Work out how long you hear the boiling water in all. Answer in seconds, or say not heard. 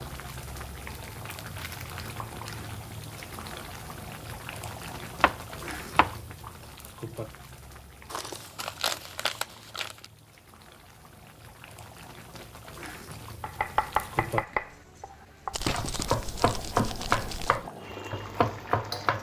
19 s.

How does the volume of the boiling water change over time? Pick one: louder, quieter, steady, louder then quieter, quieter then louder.
quieter then louder.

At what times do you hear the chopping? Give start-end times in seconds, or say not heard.
5.2-6.2, 13.4-19.1.